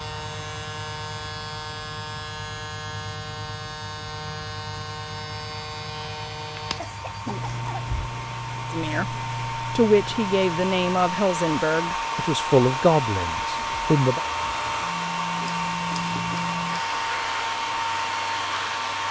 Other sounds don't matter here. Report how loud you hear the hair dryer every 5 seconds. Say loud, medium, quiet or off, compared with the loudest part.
quiet, medium, loud, loud.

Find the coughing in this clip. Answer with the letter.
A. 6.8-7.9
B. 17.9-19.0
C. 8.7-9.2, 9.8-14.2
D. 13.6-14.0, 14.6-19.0
A.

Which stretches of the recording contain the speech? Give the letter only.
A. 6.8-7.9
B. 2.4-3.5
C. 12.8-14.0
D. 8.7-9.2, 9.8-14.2
D.